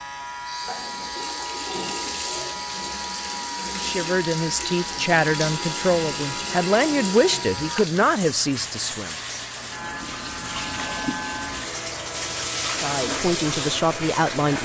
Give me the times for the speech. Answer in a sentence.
You can hear the speech from 3.8 to 9.2 s and from 12.8 to 14.6 s.